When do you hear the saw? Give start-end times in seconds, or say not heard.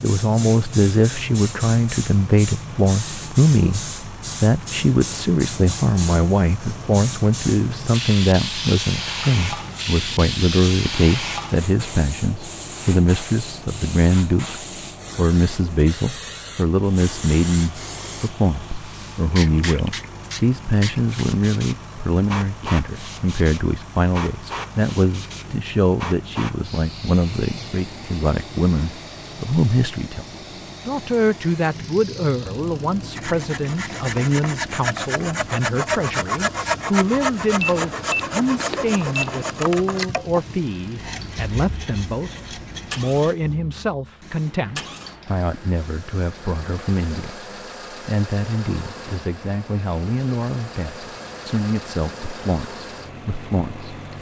33.1-43.4.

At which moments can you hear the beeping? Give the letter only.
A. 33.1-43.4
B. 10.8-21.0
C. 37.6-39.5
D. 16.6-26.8
C.